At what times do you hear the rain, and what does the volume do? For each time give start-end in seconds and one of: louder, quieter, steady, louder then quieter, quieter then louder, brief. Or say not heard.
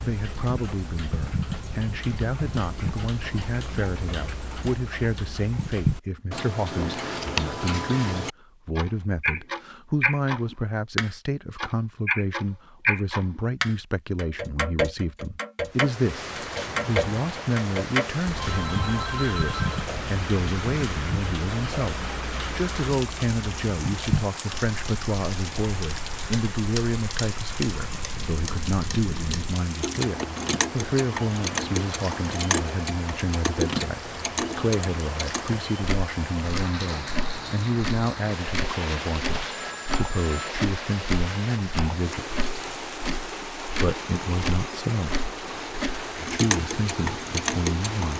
15.7-48.1 steady.